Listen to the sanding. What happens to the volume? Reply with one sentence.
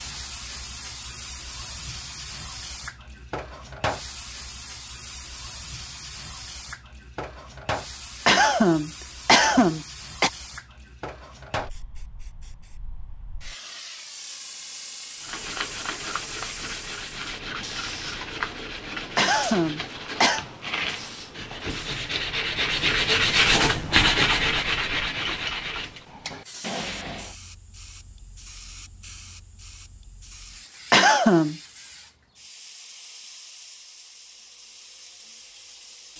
The volume of the sanding goes up, then down.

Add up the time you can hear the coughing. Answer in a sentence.
You can hear the coughing for 4 seconds altogether.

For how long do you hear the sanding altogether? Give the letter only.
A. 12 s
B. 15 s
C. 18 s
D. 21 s
A.